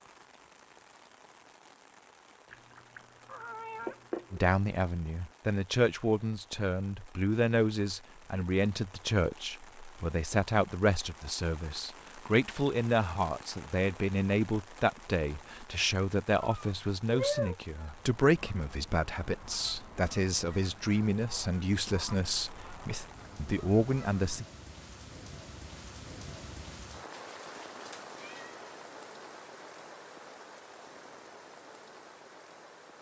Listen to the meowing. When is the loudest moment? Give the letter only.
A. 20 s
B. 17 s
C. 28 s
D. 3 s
B.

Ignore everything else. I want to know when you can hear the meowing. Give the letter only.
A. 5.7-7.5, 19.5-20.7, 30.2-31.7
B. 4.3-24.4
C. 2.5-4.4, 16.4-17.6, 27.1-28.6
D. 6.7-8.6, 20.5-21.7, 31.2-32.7
C.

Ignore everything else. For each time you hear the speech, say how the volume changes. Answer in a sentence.
You can hear the speech from 4.3 to 24.4 s, at a steady volume.